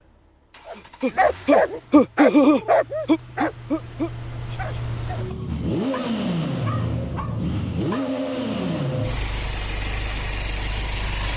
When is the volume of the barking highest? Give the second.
2 s.